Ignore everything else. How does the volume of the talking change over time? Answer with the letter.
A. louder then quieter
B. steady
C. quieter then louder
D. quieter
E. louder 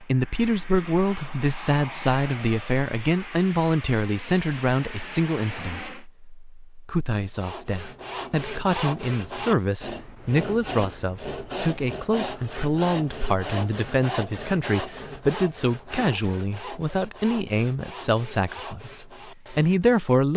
B.